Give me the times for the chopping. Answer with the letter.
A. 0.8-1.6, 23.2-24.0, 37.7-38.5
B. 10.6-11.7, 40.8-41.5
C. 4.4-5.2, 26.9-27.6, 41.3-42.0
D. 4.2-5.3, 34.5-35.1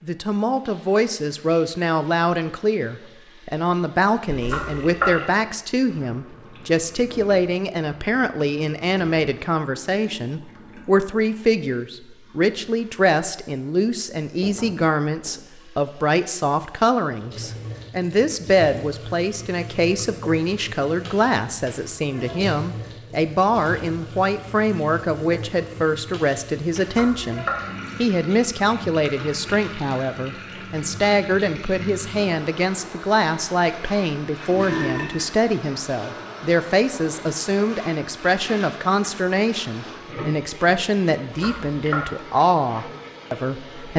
C.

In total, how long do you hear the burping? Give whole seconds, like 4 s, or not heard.
2 s.